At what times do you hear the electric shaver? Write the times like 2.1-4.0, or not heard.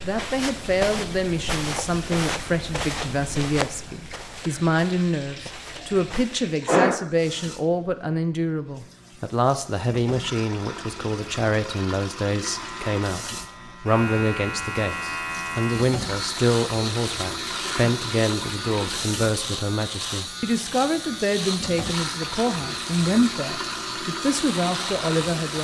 12.4-25.6.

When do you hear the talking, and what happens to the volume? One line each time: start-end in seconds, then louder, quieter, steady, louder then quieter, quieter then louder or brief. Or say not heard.
0.0-25.6 steady.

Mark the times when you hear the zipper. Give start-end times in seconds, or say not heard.
not heard.